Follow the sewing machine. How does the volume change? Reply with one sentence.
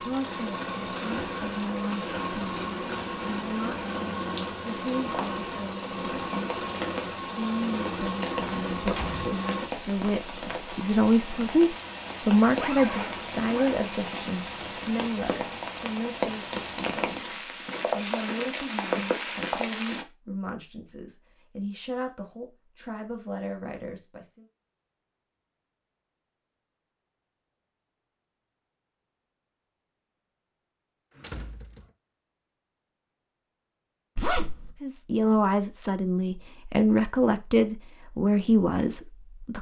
The loudness of the sewing machine stays about the same.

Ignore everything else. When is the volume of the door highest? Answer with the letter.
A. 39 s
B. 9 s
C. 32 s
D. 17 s
B.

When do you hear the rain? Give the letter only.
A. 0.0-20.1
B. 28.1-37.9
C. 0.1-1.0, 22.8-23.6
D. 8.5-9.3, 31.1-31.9
A.